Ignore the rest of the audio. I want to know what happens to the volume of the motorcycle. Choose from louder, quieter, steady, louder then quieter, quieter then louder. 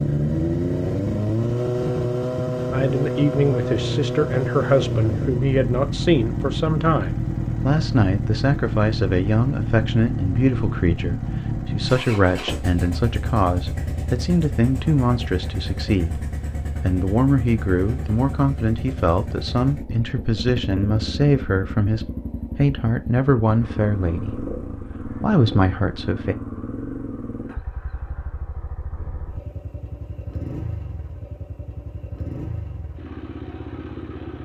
quieter.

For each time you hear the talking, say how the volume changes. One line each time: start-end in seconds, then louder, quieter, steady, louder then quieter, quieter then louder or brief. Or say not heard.
2.7-26.4 steady.